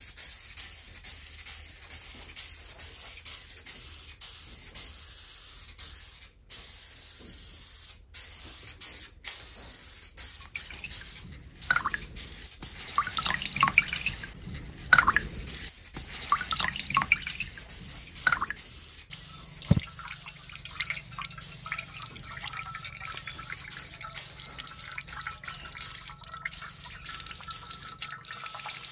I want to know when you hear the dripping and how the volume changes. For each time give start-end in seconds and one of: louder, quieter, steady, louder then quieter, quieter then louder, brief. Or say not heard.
10.4-28.8 quieter.